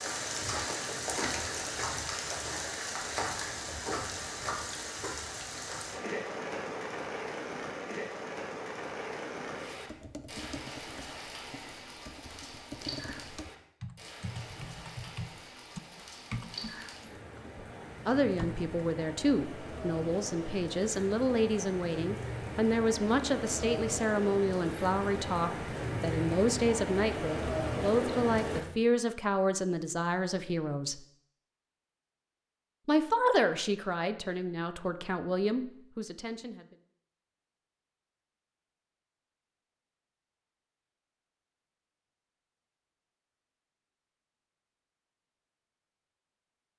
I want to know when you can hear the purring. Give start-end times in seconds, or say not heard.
not heard.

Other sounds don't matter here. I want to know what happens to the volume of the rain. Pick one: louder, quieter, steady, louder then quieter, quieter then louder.
quieter then louder.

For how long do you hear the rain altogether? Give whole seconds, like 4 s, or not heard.
29 s.